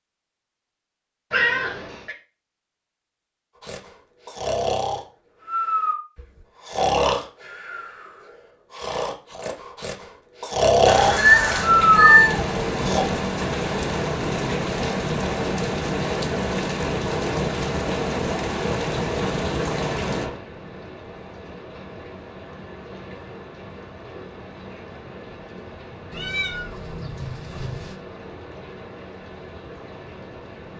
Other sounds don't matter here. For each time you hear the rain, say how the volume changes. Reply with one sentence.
The rain can be heard from 10.8 to 30.7 s, getting quieter.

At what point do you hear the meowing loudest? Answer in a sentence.
The volume of the meowing peaks at 12 seconds.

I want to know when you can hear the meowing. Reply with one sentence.
The meowing can be heard from 1.3 to 2.1 s, from 11.2 to 12.4 s and from 26.1 to 27.9 s.